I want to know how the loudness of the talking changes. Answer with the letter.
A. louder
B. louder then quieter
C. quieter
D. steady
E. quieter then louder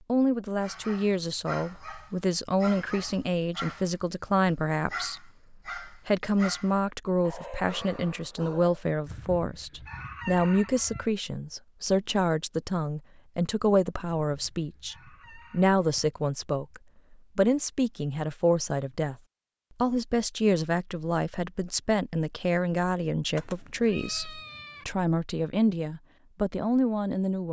D.